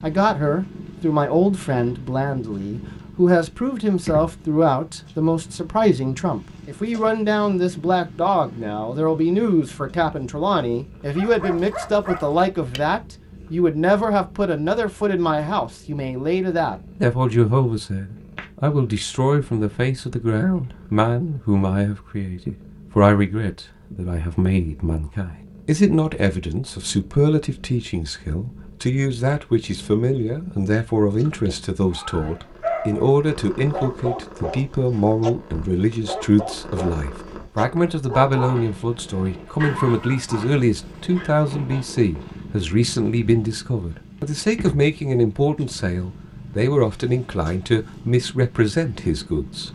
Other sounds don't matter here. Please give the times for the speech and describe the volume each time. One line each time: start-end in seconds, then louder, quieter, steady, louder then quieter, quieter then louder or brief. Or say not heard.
0.0-49.7 steady.